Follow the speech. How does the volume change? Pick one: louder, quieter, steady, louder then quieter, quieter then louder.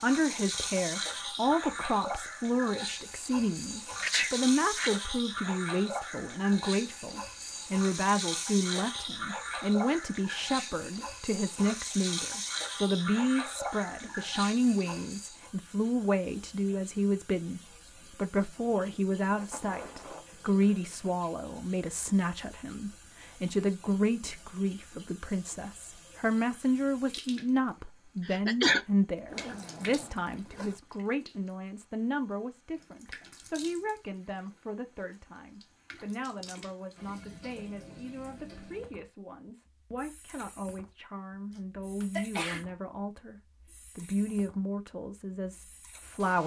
quieter.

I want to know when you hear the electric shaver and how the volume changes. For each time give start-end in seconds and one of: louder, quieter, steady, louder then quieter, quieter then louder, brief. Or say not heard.
not heard.